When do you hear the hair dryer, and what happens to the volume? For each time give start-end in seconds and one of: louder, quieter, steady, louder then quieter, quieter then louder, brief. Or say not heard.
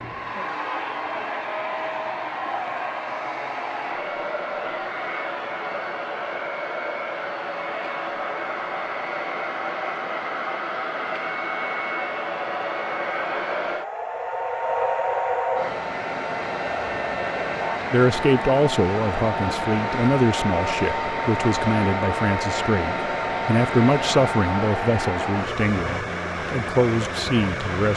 0.0-27.9 steady.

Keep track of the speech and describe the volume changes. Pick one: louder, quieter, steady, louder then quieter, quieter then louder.
steady.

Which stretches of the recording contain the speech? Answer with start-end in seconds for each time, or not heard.
17.9-27.9.